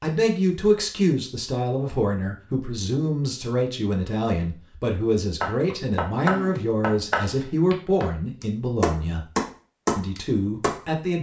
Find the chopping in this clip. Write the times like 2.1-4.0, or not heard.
5.4-10.8.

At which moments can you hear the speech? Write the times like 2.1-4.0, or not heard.
0.0-9.2, 9.9-11.1.